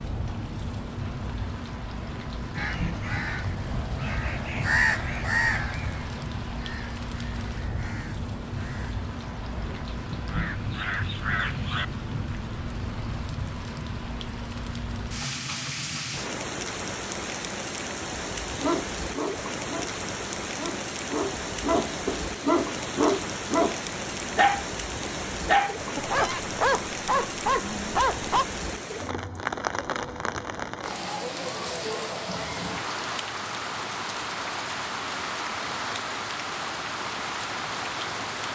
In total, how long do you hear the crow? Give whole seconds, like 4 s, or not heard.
9 s.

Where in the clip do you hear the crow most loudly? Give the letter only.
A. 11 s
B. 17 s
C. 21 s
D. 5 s
D.